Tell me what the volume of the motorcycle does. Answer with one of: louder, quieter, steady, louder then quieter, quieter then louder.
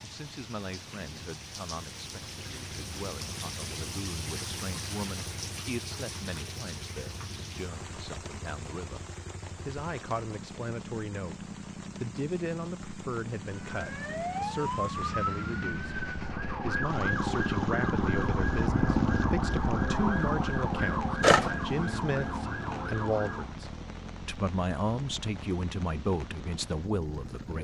louder then quieter.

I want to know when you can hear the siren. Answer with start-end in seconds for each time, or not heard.
13.6-23.6.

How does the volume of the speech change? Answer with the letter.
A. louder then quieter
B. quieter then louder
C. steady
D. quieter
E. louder
E.